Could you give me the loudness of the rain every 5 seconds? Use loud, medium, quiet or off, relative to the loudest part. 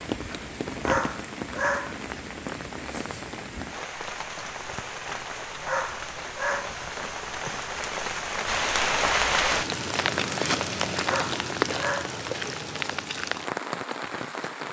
medium, loud, loud.